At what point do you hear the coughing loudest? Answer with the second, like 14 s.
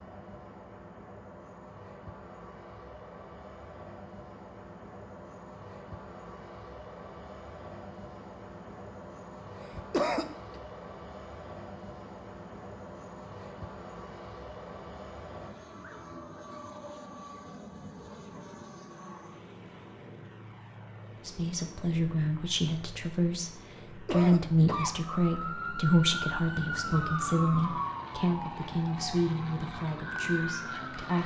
10 s.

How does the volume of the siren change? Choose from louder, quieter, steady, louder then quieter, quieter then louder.
quieter then louder.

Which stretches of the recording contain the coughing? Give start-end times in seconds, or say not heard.
9.6-10.6, 23.8-24.9.